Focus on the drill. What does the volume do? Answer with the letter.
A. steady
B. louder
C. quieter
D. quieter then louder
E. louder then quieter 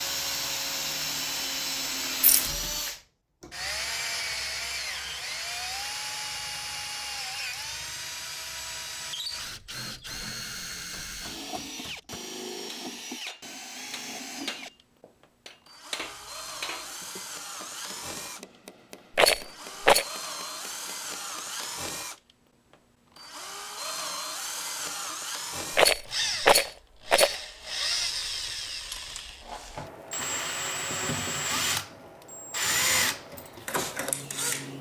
D.